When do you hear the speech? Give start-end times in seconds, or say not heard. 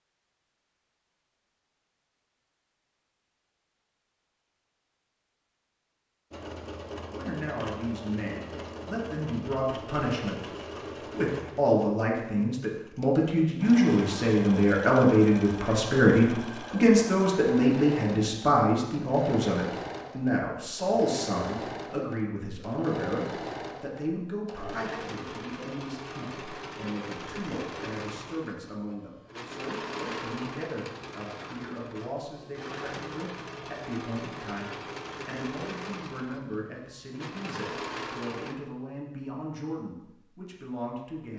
7.1-41.3.